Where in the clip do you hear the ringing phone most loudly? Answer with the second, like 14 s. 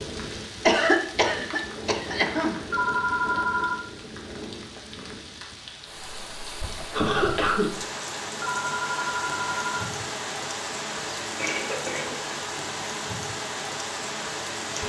3 s.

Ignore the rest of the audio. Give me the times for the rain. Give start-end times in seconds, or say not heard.
0.0-14.8.